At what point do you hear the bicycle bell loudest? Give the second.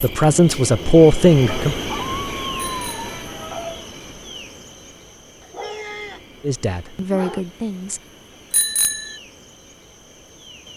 9 s.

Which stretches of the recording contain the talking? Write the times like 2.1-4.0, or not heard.
0.0-1.8, 6.4-8.0.